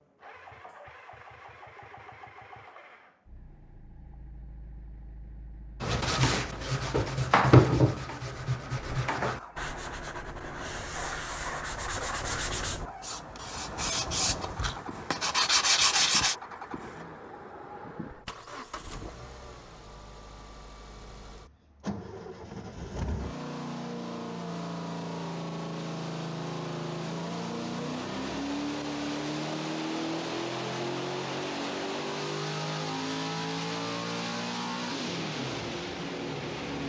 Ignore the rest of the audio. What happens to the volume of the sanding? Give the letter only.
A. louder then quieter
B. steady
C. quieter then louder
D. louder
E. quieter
C.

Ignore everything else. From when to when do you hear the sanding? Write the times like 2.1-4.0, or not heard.
5.8-16.4.